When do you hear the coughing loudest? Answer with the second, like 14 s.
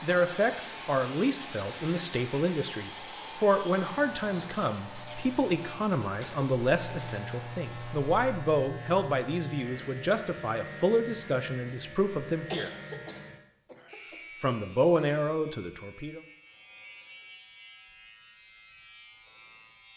13 s.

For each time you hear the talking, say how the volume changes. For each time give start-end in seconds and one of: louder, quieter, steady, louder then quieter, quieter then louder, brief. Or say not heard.
0.0-12.7 steady
14.4-16.2 brief.